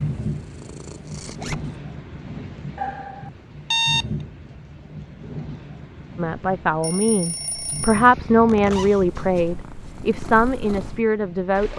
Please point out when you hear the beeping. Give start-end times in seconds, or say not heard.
2.8-4.0, 6.8-8.1.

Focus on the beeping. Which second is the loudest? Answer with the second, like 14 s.
4 s.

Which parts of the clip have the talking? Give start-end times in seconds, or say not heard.
6.2-11.7.